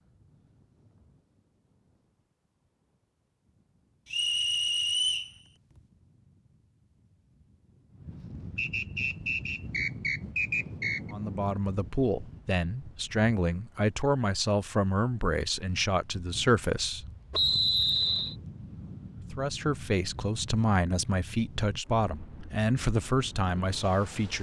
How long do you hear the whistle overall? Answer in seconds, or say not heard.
5 s.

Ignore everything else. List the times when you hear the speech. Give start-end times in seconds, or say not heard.
11.1-17.1, 19.3-24.3.